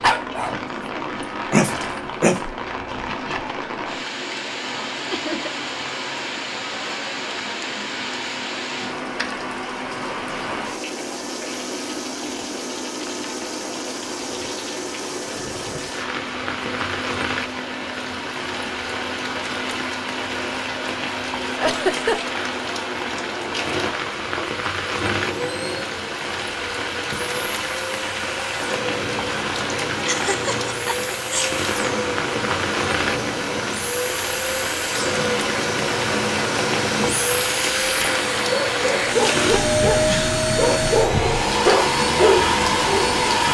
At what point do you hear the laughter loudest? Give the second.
22 s.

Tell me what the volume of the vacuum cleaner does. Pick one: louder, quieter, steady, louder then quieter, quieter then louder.
louder.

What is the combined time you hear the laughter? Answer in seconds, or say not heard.
3 s.